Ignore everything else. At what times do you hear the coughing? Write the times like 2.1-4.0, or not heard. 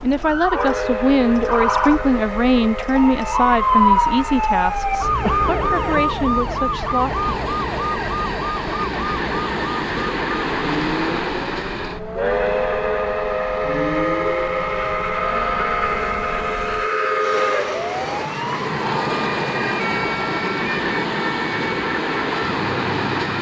5.2-6.1.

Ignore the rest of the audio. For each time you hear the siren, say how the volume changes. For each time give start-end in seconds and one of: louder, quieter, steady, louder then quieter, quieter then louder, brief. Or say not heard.
0.0-23.3 quieter.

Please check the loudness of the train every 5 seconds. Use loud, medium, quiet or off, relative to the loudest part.
medium, medium, loud, loud, loud.